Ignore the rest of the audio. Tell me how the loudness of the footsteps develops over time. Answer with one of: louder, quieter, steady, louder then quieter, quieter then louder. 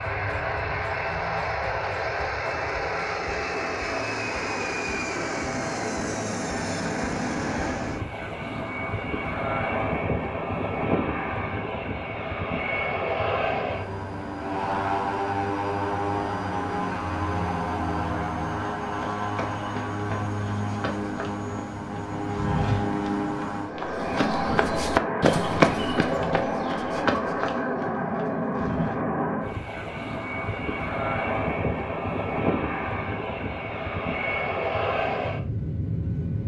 louder then quieter.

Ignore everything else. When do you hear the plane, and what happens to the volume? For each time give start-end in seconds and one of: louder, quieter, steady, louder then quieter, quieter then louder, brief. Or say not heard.
0.0-36.4 steady.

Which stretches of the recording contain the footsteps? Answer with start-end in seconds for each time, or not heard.
18.9-29.0.